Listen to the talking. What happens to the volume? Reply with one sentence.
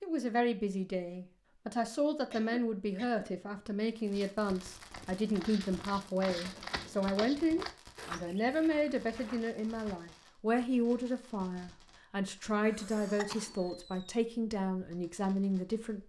The loudness of the talking stays about the same.